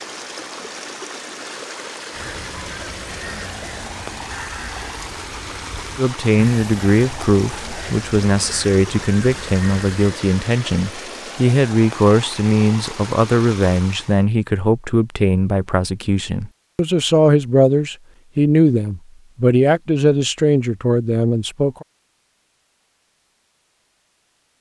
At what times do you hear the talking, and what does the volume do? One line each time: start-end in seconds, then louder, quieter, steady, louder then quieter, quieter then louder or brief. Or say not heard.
6.0-21.9 steady.